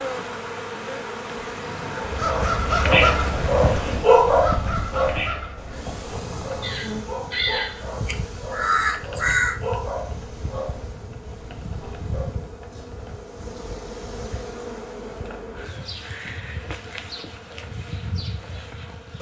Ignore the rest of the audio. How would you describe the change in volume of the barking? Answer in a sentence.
The volume of the barking goes down.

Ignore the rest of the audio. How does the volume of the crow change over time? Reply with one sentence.
The loudness of the crow goes down, then up.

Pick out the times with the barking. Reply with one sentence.
You can hear the barking from 2.0 to 12.4 s.